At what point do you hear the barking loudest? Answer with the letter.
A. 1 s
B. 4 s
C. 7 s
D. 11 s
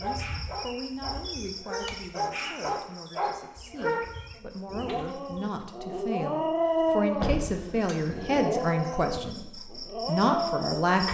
C.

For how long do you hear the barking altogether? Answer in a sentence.
You can hear the barking for 10 seconds altogether.